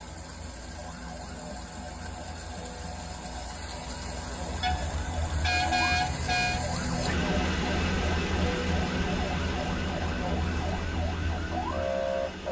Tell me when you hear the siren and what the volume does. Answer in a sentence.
The siren can be heard from 0.0 to 12.4 s, getting louder.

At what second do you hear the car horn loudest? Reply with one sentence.
The loudest moment of the car horn is at 6 seconds.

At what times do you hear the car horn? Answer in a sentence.
You can hear the car horn from 4.6 to 6.7 s.